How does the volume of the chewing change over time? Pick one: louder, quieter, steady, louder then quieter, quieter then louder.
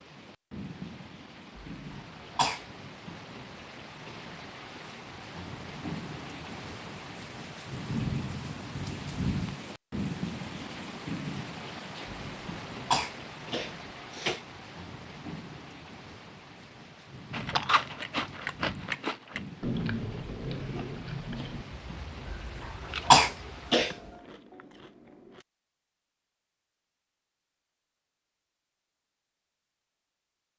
quieter.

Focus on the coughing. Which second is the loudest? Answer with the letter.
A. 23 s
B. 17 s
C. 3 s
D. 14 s
A.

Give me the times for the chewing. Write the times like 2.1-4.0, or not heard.
17.3-25.4.